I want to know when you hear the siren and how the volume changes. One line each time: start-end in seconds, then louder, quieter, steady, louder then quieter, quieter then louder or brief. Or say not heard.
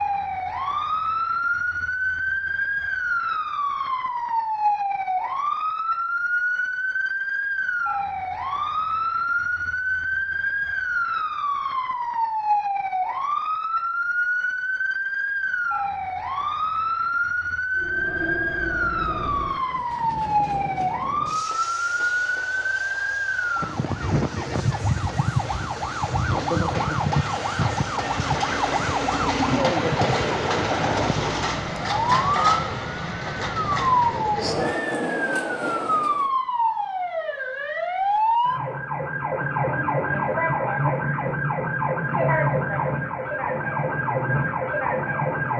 0.0-45.5 steady.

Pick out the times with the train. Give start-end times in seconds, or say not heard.
17.8-36.3.